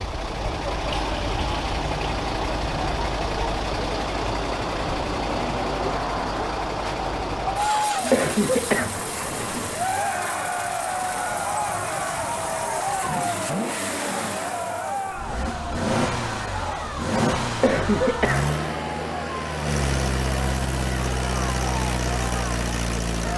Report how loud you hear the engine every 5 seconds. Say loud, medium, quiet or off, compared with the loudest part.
loud, loud, medium, loud, loud.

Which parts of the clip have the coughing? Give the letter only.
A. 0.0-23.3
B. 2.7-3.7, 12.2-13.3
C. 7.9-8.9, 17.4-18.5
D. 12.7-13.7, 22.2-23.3
C.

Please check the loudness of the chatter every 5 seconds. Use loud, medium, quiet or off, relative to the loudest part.
medium, loud, loud, medium, medium.